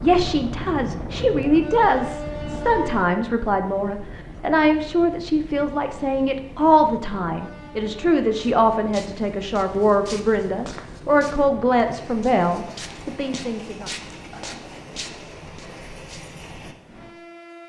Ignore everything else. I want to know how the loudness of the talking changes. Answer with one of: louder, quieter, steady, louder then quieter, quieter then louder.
steady.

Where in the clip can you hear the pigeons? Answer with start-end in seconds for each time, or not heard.
not heard.